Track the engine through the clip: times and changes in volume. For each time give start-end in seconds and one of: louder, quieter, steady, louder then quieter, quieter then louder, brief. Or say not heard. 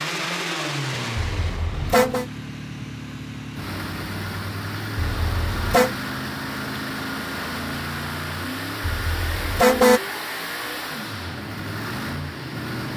0.0-12.9 steady.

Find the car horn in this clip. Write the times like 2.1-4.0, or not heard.
1.1-2.2, 5.0-6.0, 8.8-10.0.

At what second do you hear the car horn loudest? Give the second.
10 s.